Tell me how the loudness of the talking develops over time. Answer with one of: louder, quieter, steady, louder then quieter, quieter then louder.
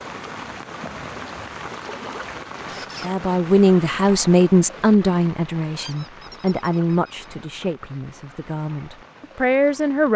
quieter then louder.